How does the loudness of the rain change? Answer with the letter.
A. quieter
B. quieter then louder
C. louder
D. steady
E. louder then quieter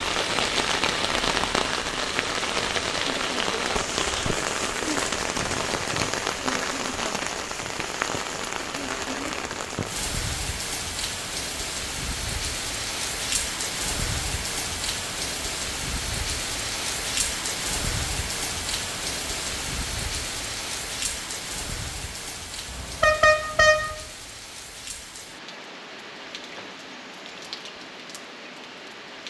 A.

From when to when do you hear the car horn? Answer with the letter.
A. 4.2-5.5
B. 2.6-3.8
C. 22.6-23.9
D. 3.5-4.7
C.